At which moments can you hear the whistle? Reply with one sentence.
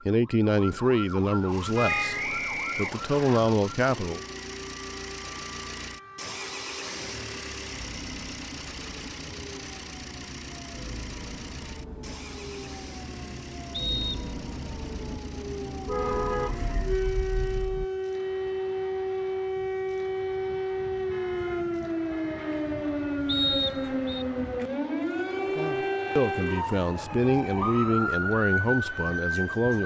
The whistle can be heard from 1.9 to 3.4 s, from 13.7 to 14.3 s and from 23.2 to 24.2 s.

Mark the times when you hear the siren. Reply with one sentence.
The siren can be heard from 0.0 to 29.8 s.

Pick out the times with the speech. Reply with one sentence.
You can hear the speech from 0.1 to 4.2 s and from 25.6 to 29.8 s.